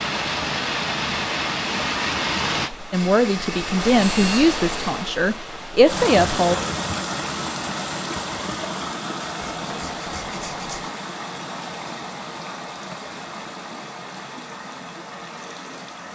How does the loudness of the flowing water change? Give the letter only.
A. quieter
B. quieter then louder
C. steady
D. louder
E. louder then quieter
A.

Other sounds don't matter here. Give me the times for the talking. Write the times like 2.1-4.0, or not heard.
2.9-6.5.